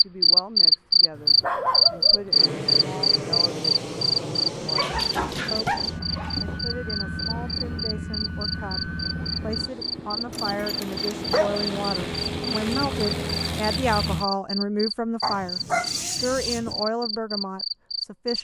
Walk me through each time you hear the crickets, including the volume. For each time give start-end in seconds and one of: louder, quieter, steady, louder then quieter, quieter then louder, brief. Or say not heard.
0.0-18.3 quieter.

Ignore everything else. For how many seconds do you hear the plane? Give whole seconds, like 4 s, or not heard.
12 s.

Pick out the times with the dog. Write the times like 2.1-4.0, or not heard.
1.1-2.3, 4.8-6.6, 10.3-11.7, 15.2-16.8.